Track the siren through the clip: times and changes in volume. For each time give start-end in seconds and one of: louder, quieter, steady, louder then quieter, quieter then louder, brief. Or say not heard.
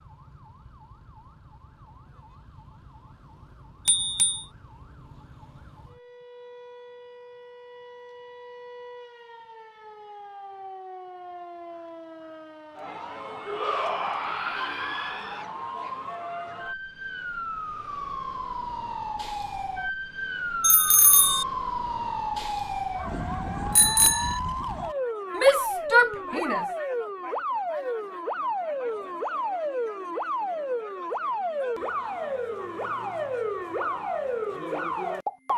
0.0-35.5 louder.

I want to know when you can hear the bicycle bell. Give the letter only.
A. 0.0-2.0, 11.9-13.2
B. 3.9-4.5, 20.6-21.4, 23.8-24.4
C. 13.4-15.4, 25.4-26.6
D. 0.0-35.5
B.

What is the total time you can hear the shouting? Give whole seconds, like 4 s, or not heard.
3 s.